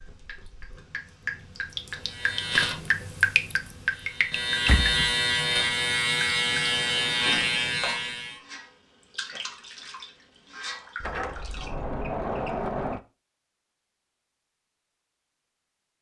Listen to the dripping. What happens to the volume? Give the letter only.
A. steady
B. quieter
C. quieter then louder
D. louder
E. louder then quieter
E.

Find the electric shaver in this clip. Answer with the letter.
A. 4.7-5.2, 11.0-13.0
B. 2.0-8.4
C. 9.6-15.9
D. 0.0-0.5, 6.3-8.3
B.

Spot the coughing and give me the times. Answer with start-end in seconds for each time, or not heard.
not heard.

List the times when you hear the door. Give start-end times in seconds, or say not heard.
4.7-5.2, 11.0-13.0.